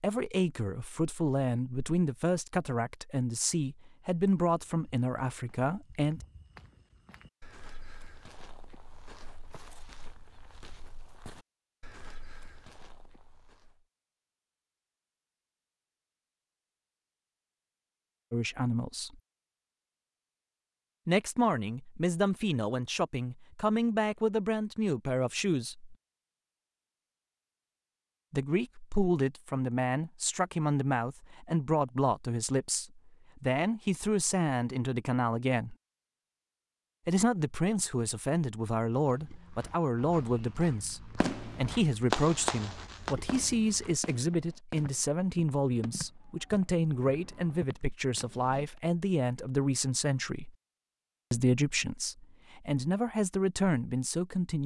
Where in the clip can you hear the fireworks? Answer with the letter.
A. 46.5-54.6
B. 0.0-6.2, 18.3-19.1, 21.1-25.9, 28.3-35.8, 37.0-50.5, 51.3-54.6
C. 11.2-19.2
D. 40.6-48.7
D.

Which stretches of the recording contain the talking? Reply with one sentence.
The talking can be heard from 0.0 to 6.2 s, from 18.3 to 19.1 s, from 21.1 to 25.9 s, from 28.3 to 35.8 s, from 37.0 to 50.5 s and from 51.3 to 54.6 s.